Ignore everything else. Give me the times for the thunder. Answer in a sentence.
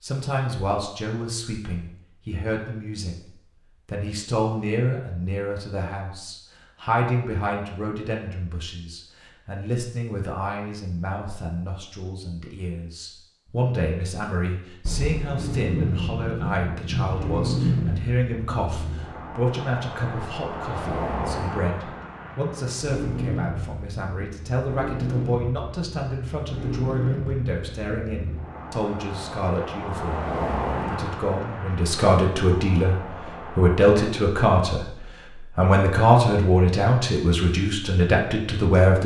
The thunder can be heard from 14.8 to 18.1 s.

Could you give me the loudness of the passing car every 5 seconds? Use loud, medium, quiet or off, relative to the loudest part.
off, off, off, loud, loud, loud, loud, off.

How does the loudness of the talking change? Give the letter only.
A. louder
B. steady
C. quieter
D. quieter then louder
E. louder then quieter
A.